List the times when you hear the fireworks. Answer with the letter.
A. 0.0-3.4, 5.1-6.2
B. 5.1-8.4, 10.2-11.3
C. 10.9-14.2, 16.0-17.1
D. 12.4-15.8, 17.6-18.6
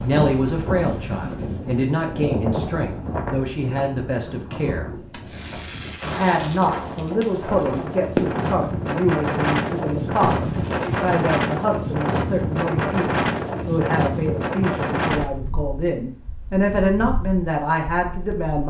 B.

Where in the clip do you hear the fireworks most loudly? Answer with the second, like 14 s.
8 s.